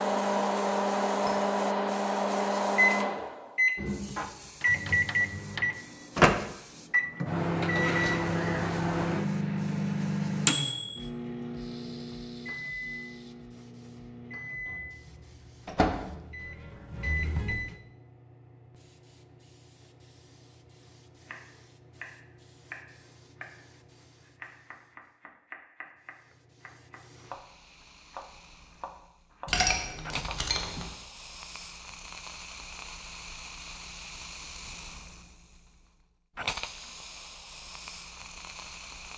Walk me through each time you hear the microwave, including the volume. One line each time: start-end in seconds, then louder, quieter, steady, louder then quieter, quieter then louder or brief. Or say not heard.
0.0-17.8 quieter.